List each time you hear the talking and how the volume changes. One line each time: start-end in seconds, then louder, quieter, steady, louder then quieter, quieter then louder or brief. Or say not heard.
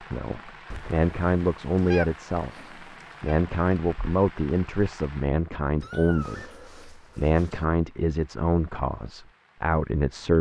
0.1-10.3 steady.